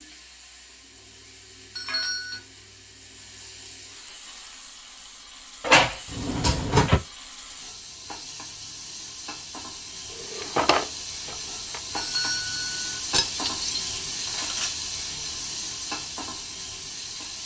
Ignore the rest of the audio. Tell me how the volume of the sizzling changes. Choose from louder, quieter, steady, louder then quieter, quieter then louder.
louder.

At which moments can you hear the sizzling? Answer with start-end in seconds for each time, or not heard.
0.0-17.4.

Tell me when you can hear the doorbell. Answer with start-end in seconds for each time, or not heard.
1.8-2.4, 11.9-12.8.